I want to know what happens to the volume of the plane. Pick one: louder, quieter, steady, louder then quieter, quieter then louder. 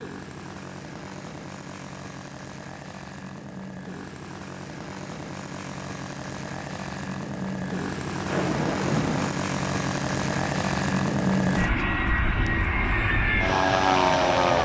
louder.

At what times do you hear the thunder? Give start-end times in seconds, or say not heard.
8.2-9.3.